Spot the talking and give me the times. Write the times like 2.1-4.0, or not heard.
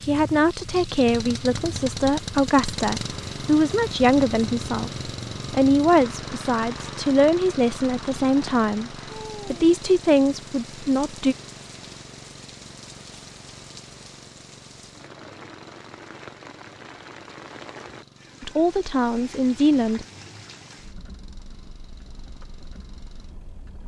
0.0-4.9, 5.5-11.3, 18.4-20.1.